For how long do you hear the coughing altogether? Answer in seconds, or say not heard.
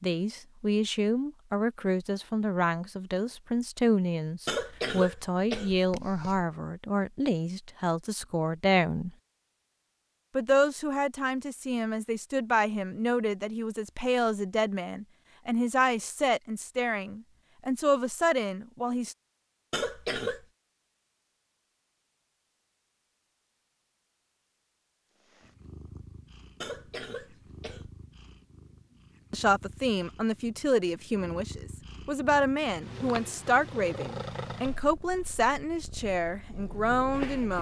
4 s.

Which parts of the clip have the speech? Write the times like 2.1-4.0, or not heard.
0.0-9.1, 10.3-19.1, 29.3-37.5.